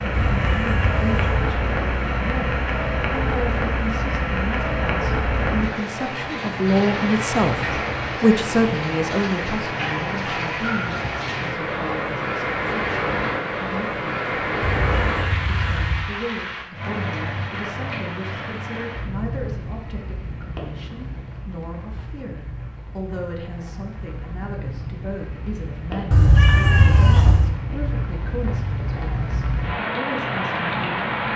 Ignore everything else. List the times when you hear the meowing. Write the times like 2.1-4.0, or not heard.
0.1-1.5, 14.6-16.1, 26.1-27.5.